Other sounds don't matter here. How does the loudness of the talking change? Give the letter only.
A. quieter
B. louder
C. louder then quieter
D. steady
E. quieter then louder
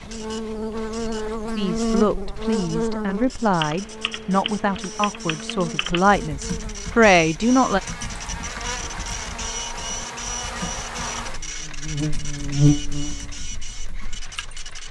B.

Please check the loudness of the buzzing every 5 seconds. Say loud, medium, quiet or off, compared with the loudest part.
loud, medium, loud.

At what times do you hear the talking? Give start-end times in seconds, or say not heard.
1.6-7.8.